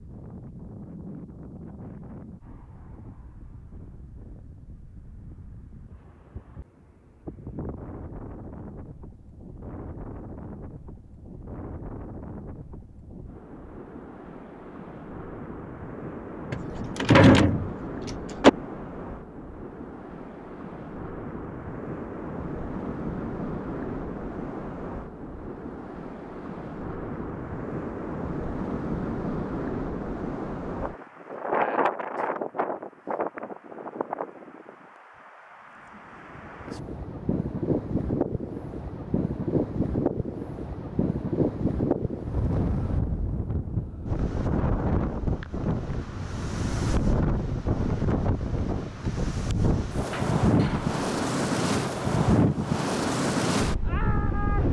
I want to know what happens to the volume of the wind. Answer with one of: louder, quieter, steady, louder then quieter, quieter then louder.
louder.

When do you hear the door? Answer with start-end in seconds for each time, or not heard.
16.5-18.5, 50.1-51.0.